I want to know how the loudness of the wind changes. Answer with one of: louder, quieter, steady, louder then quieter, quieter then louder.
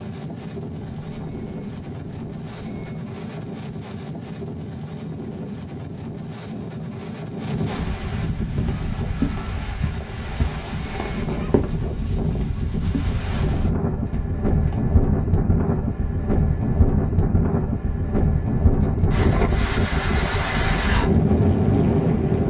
louder.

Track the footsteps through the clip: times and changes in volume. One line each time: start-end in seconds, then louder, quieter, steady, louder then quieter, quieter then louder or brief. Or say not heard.
8.6-14.8 quieter.